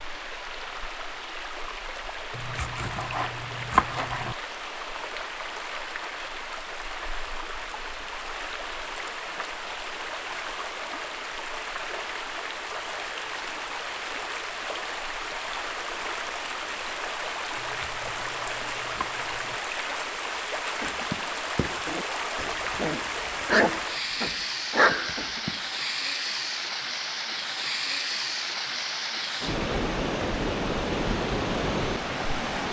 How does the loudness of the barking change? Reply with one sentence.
The volume of the barking goes down, then up.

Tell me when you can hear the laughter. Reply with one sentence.
You can't hear the laughter here.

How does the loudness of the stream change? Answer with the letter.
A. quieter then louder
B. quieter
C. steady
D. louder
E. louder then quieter
D.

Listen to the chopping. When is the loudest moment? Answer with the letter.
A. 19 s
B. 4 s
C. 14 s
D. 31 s
B.